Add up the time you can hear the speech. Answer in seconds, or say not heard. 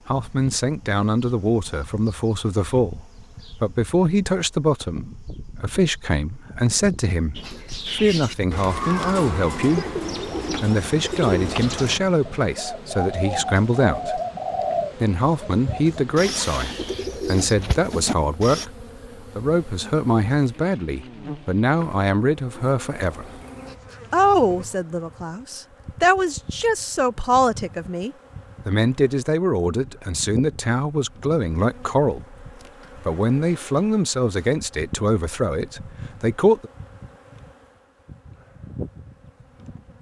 34 s.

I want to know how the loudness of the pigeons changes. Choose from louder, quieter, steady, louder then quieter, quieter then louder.
steady.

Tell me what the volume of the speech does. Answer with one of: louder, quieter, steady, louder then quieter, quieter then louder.
steady.